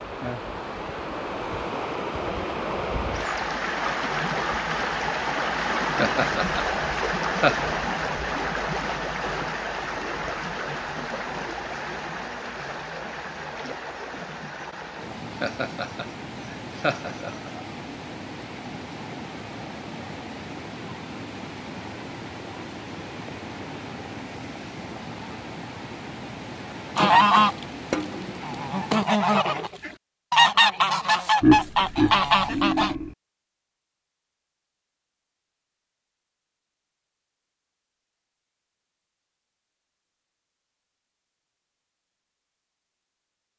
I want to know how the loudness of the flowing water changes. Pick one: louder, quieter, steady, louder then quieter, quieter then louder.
quieter.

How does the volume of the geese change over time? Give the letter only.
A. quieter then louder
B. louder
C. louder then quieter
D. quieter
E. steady
E.